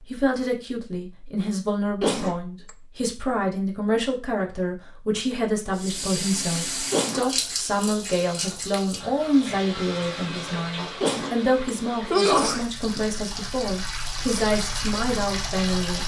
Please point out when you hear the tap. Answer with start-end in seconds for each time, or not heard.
5.7-16.0.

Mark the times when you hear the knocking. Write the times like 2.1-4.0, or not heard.
not heard.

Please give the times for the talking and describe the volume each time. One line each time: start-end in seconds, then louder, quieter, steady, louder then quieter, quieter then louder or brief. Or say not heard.
0.1-16.0 steady.